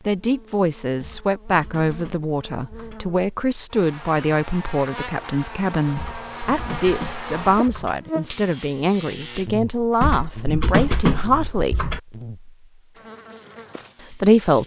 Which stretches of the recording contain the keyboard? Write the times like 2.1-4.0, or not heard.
1.0-3.0, 6.0-8.0, 10.0-12.0.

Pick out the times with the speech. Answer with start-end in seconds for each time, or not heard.
0.1-11.9, 14.0-14.6.